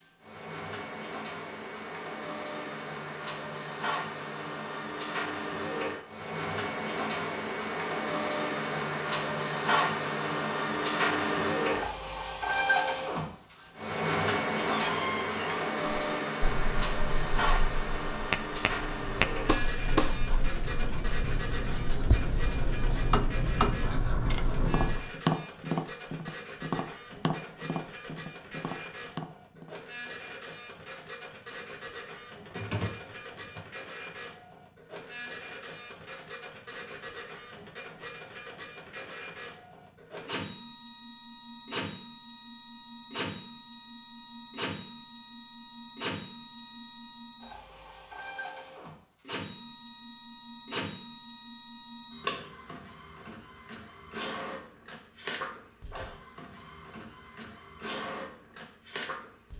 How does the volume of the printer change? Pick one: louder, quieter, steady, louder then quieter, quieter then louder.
quieter.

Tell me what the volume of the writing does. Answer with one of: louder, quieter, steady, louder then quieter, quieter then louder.
louder.